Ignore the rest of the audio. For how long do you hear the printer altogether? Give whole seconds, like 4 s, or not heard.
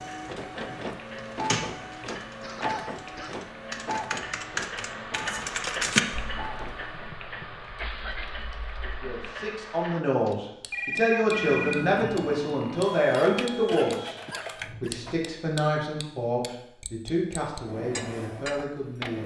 13 s.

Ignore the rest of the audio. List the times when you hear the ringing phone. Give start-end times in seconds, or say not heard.
10.2-11.8.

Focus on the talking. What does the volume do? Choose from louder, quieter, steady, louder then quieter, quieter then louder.
quieter.